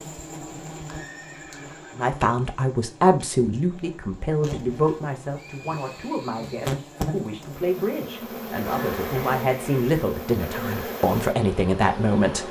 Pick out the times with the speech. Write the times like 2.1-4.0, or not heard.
1.9-12.4.